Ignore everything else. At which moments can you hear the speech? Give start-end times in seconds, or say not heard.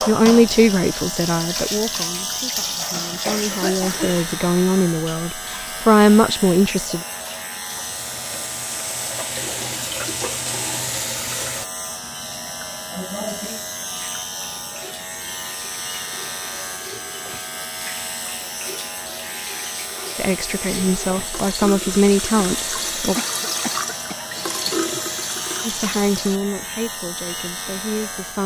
0.1-7.0, 20.1-23.1, 25.6-28.4.